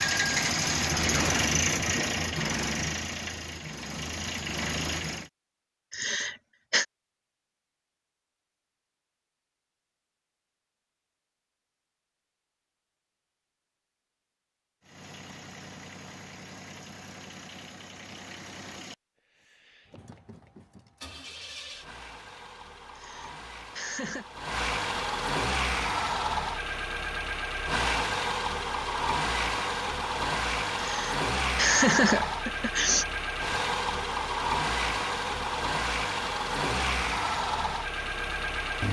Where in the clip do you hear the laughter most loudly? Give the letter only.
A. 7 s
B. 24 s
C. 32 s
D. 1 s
C.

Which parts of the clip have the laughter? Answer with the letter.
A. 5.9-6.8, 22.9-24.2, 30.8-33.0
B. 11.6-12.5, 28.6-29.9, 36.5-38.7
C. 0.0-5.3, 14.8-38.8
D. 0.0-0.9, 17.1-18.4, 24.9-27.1
A.